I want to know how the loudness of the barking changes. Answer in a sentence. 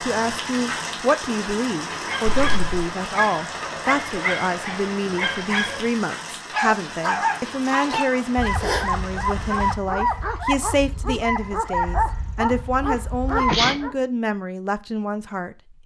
The volume of the barking stays about the same.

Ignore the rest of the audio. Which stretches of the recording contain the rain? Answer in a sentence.
You can hear the rain from 0.0 to 9.8 s.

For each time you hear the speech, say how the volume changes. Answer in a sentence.
You can hear the speech from 0.0 to 15.6 s, at a steady volume.